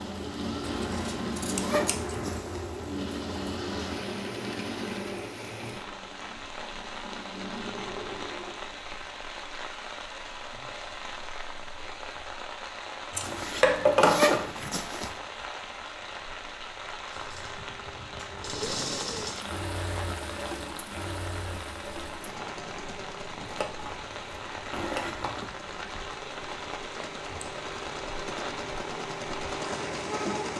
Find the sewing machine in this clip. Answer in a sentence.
You can hear the sewing machine from 0.0 to 8.8 s and from 17.1 to 30.5 s.